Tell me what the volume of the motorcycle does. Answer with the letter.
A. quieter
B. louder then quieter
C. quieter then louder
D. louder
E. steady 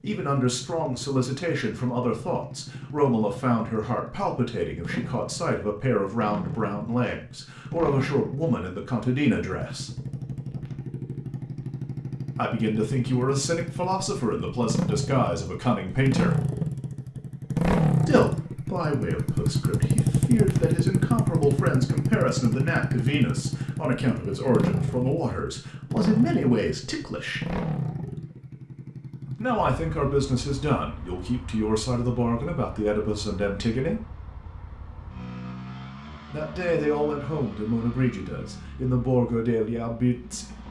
B.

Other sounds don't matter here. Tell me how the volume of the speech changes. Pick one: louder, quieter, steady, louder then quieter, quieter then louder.
steady.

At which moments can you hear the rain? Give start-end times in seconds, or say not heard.
not heard.